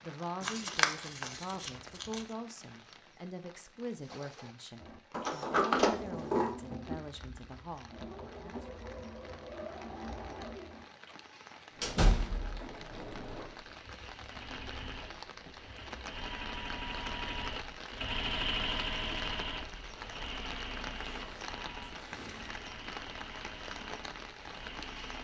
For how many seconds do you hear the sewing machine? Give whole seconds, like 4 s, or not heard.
20 s.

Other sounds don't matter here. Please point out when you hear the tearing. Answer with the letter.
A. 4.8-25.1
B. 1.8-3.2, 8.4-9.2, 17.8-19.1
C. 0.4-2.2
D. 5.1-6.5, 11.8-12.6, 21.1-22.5
C.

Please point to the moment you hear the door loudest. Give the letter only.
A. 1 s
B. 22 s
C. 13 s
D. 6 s
D.